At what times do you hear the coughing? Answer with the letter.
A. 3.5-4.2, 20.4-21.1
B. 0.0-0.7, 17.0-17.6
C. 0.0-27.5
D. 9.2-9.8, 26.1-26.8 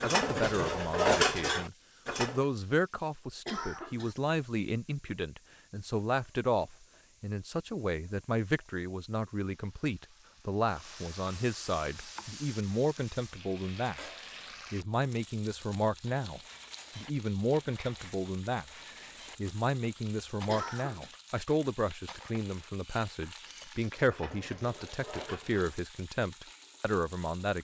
A.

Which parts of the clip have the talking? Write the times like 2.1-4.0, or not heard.
0.0-27.5.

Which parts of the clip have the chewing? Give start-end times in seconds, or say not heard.
not heard.